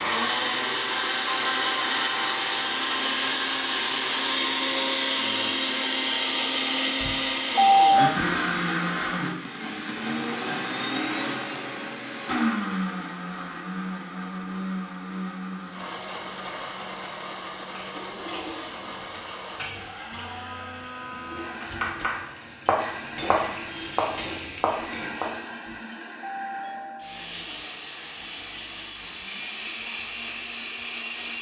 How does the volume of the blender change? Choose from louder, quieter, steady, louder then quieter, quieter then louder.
quieter.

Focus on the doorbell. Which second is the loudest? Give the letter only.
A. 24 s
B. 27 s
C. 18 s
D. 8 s
D.